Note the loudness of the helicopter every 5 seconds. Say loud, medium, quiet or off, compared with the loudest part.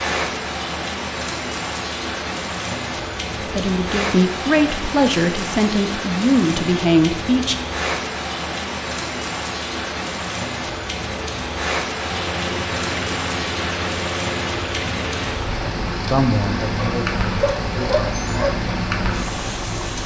off, off, loud, loud.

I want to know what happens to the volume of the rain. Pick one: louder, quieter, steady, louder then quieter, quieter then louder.
steady.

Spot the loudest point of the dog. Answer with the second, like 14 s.
18 s.